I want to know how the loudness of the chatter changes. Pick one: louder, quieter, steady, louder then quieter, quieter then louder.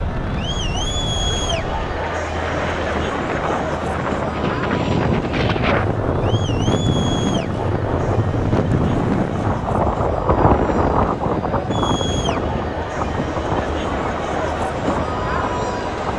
quieter then louder.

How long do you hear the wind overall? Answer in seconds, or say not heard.
16 s.